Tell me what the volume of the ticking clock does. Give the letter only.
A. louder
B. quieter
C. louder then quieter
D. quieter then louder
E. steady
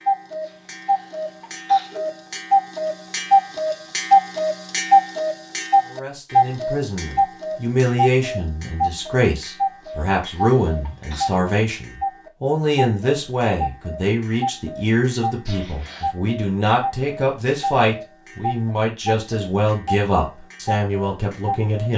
B.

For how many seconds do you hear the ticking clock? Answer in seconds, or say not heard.
22 s.